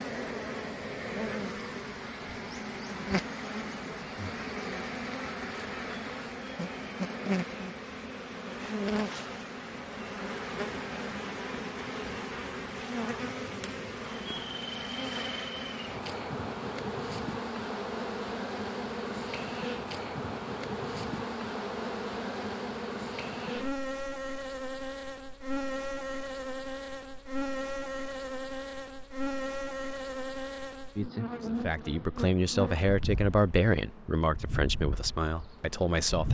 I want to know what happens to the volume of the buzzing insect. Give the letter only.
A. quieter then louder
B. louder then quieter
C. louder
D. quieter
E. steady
E.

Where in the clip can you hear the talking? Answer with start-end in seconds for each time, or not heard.
31.4-36.3.